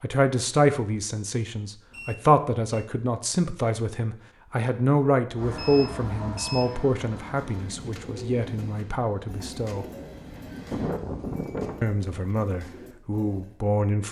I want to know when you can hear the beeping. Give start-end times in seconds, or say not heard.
1.9-2.9, 5.5-6.8, 10.7-11.8.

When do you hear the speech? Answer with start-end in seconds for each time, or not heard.
0.0-9.8, 11.8-14.0.